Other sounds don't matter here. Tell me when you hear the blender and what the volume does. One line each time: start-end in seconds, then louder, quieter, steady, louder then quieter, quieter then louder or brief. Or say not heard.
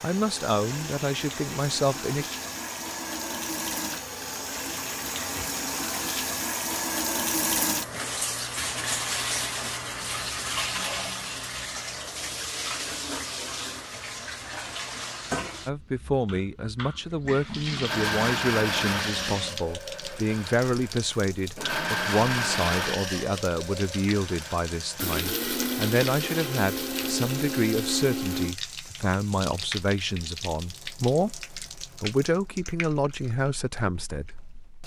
17.9-28.6 steady.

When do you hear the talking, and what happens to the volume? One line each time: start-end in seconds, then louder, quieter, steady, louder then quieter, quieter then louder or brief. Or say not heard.
0.0-2.2 brief
15.7-34.5 steady.